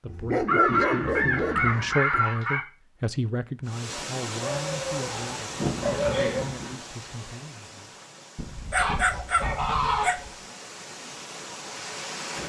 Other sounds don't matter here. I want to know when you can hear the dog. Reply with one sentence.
The dog can be heard from 0.1 to 2.2 s, from 4.4 to 6.5 s and from 8.3 to 10.3 s.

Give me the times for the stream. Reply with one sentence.
You can hear the stream from 3.6 to 12.4 s.